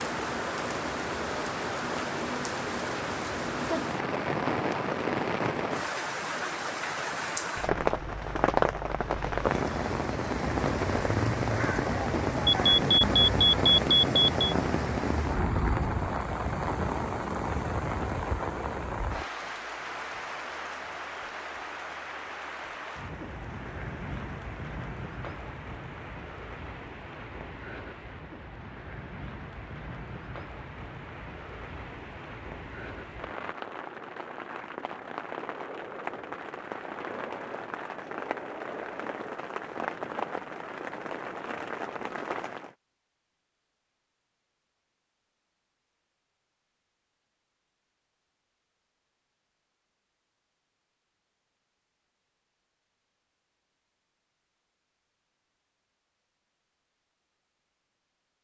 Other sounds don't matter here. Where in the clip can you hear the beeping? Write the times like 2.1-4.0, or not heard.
12.4-14.5.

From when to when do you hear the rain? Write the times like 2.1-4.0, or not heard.
0.0-42.8.